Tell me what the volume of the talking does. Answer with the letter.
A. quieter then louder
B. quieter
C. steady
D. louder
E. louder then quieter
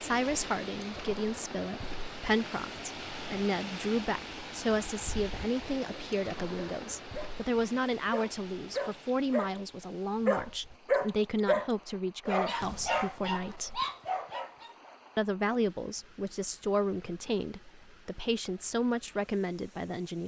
C.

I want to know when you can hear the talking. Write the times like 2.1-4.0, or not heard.
0.0-13.8, 15.2-20.2.